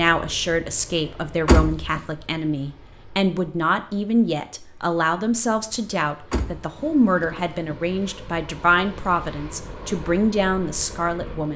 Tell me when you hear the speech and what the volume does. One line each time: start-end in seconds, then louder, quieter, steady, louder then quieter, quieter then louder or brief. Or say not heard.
0.0-11.5 steady.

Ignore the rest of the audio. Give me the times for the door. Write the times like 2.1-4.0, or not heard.
1.4-2.0, 6.3-8.0.